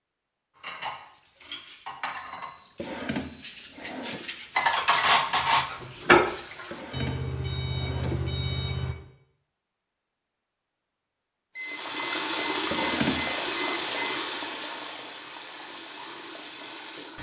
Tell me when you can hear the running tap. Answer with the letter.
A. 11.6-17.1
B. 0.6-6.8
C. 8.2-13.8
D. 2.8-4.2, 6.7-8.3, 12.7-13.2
A.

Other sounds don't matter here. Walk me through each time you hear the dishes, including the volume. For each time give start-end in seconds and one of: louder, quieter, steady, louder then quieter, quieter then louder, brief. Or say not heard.
0.6-6.8 louder.